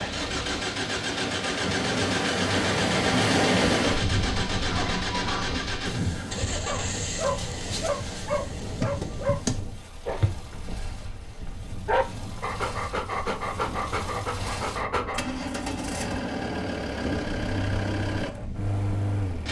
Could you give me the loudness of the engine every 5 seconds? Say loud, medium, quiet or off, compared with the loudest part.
loud, medium, quiet, loud.